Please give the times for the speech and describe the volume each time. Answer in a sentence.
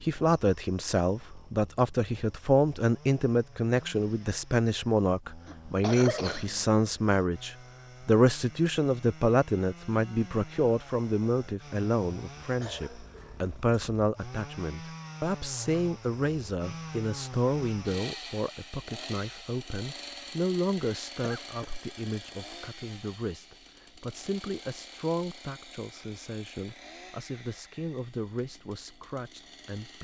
You can hear the speech from 0.0 to 29.9 s, getting quieter.